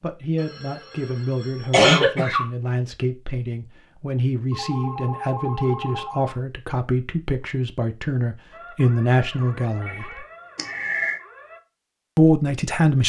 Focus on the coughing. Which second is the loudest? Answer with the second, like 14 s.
2 s.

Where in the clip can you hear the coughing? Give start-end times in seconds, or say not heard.
1.7-2.5, 10.6-11.2.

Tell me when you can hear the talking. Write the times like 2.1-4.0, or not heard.
0.0-10.2, 12.2-13.0.